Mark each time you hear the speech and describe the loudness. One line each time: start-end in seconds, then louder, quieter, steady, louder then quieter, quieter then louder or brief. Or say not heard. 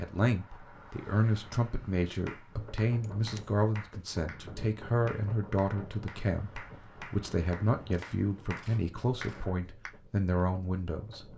0.0-11.2 steady.